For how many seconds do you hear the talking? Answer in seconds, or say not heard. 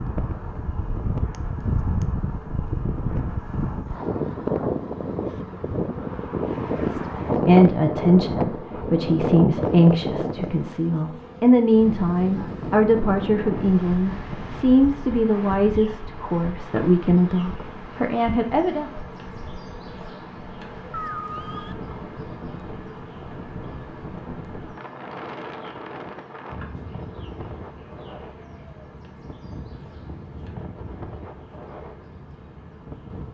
12 s.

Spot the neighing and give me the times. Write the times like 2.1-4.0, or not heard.
20.9-21.8.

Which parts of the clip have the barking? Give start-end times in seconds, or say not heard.
not heard.